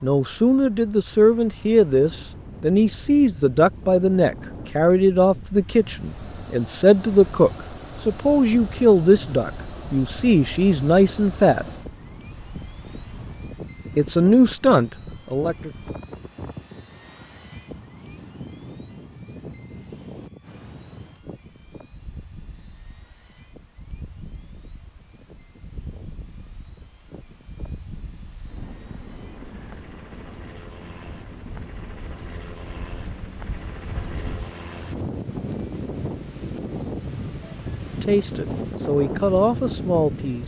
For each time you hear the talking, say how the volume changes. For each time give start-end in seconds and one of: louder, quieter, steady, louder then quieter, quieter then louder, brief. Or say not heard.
0.0-11.7 steady
13.9-15.7 brief
37.9-40.4 brief.